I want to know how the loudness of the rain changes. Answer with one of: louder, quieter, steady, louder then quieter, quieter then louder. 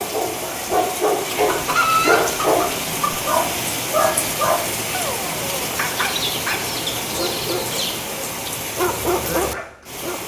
steady.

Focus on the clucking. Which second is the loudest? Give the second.
2 s.